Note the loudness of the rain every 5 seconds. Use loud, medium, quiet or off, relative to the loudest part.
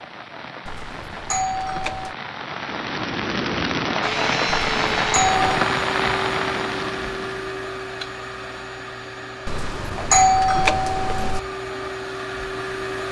loud, loud, off.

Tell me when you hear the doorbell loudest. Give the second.
10 s.